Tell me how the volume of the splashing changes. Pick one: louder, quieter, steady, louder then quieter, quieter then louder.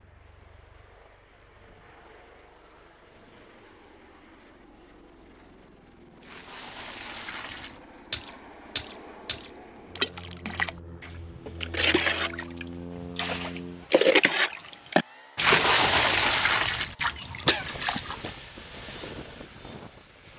louder.